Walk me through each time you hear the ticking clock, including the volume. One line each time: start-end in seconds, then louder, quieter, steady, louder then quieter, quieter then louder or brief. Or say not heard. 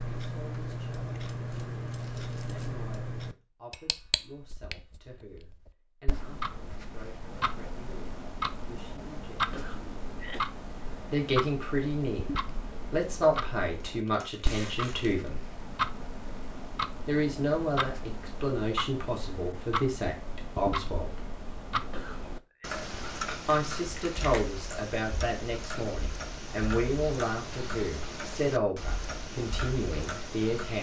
0.0-30.7 steady.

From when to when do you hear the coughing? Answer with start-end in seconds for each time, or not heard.
9.5-10.5, 21.9-22.7.